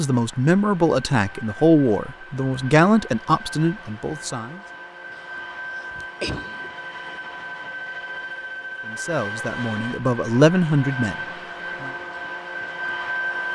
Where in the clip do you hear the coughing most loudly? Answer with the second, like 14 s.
6 s.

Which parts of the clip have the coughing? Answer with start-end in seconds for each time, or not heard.
5.2-6.7.